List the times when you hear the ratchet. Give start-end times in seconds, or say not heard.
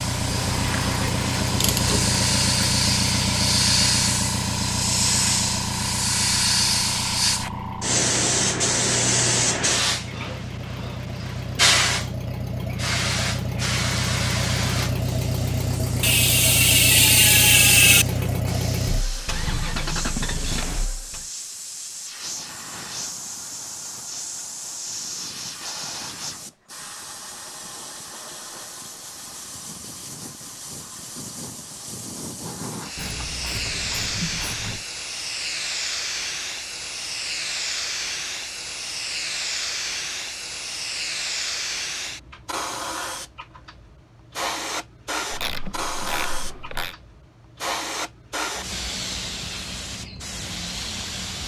0.2-2.2, 16.0-18.1, 33.0-34.9, 45.3-47.0.